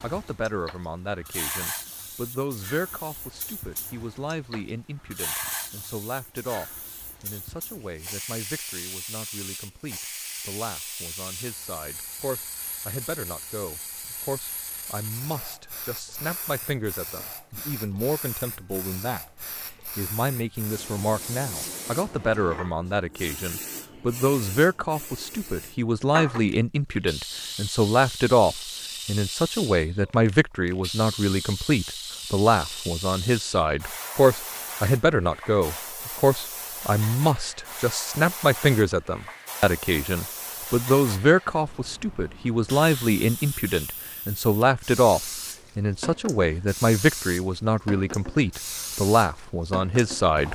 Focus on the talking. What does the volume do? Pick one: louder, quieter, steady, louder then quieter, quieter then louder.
louder.